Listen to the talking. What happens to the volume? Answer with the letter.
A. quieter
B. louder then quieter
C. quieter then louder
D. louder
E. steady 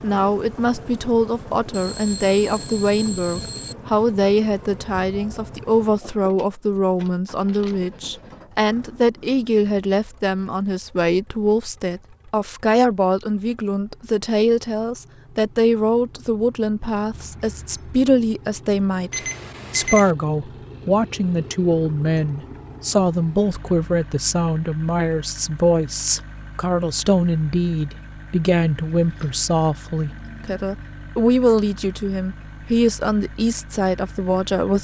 E.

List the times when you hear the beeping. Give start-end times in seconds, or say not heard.
1.7-3.8, 19.1-20.1.